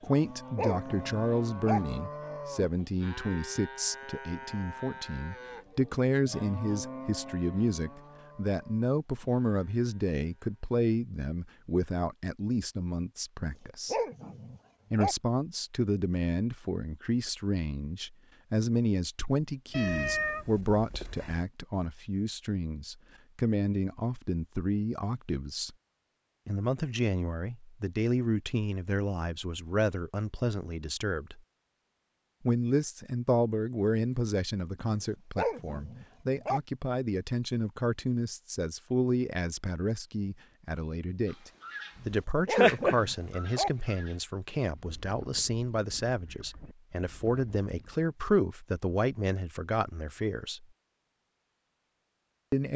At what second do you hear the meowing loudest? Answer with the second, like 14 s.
20 s.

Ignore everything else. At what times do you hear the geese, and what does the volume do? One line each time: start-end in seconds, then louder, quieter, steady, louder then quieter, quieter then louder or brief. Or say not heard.
41.6-48.0 quieter.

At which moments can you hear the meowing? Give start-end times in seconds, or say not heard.
19.7-21.4.